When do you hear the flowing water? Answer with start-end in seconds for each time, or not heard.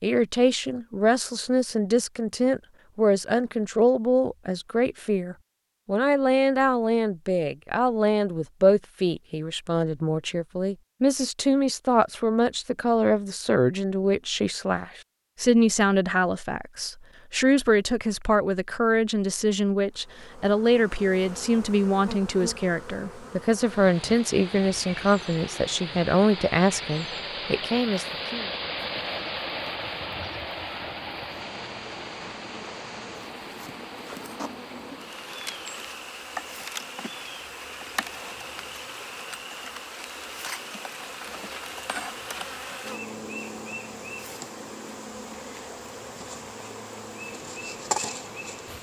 23.6-48.7.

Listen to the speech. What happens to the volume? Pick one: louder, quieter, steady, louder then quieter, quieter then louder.
steady.